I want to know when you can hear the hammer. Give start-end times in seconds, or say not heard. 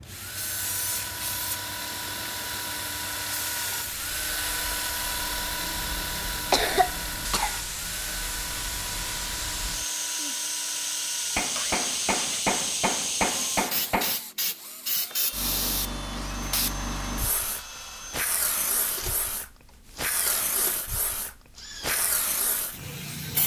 11.3-14.2.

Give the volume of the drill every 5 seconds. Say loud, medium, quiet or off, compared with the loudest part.
loud, loud, medium, medium, medium.